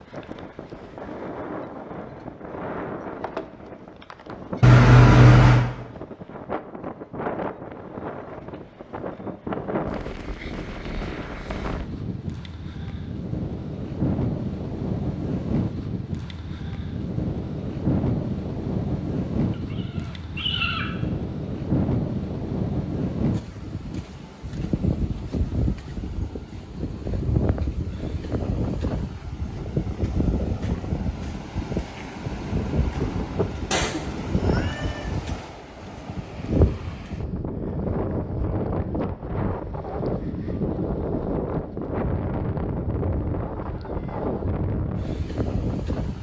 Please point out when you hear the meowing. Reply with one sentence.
You can hear the meowing from 4.6 to 5.7 s, from 19.5 to 20.9 s and from 33.7 to 35.1 s.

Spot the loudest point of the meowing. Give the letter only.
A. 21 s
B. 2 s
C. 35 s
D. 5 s
D.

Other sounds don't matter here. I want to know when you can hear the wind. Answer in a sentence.
You can hear the wind from 0.0 to 46.1 s.